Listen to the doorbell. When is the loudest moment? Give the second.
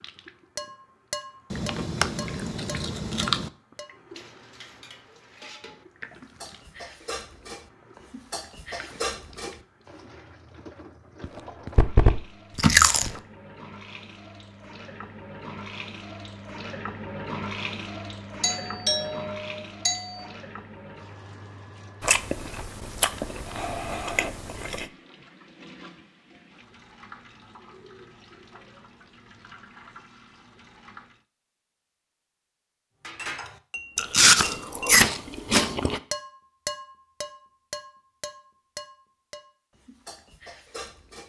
19 s.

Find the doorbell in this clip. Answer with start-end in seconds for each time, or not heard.
18.4-20.2.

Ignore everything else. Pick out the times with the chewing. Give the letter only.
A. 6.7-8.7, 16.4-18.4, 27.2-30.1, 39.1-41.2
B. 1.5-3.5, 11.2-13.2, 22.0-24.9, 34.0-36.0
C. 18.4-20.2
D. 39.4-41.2
B.